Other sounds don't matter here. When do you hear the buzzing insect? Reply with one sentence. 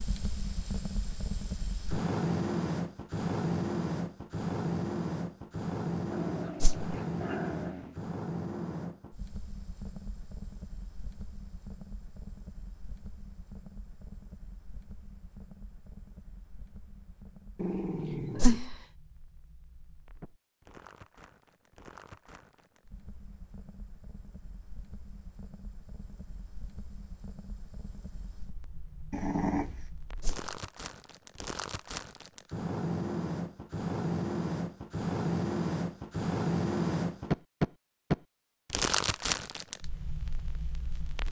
The buzzing insect can't be heard in this clip.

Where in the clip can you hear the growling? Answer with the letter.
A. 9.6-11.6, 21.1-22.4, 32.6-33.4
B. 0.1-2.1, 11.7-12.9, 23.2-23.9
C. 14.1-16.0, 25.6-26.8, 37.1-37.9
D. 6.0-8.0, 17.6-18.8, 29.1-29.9
D.